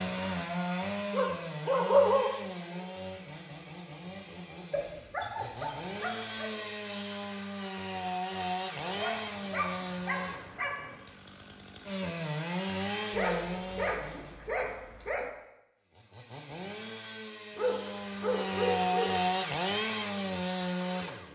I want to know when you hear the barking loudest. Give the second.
2 s.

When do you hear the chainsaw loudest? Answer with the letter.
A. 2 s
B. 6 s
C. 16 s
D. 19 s
D.